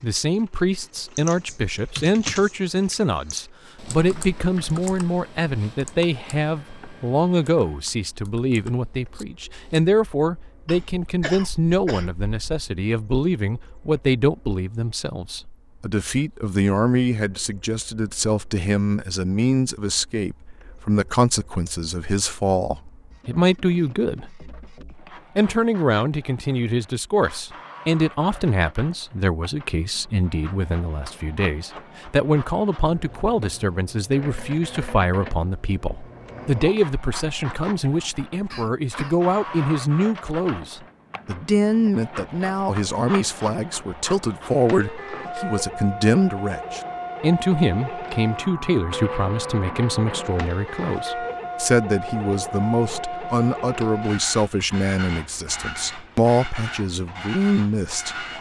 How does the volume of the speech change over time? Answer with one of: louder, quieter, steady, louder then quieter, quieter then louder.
steady.